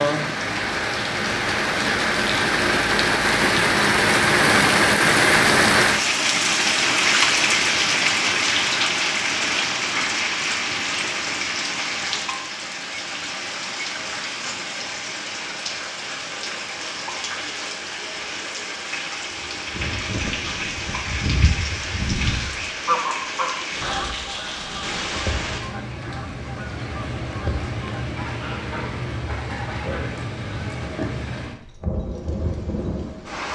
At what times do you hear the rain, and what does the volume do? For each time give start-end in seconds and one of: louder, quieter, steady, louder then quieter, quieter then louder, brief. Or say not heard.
0.0-33.5 quieter.